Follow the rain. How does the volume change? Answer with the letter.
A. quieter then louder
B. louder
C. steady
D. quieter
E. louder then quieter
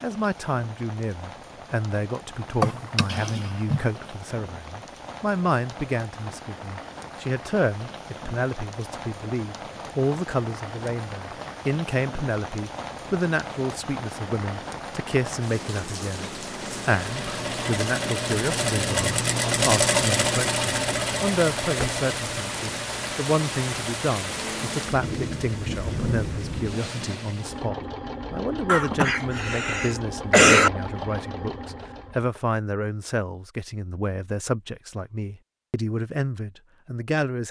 B.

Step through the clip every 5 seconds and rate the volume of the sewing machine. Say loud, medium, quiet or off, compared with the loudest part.
off, off, off, loud, loud, medium, medium, off.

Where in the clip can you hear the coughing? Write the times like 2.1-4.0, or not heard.
2.6-3.8, 28.6-30.7.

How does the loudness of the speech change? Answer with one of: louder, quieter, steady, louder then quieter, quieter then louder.
steady.